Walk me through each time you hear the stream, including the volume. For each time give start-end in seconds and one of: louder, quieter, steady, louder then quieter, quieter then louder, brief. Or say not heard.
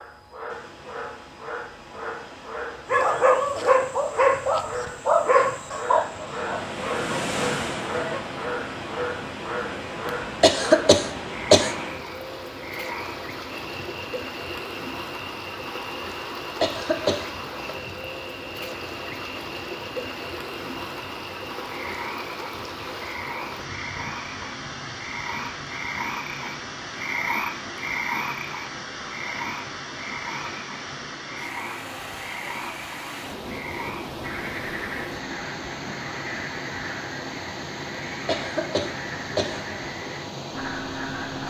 0.0-41.4 steady.